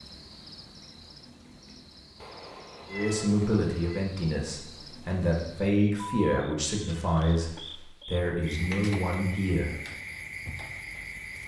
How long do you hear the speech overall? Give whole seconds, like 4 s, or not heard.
7 s.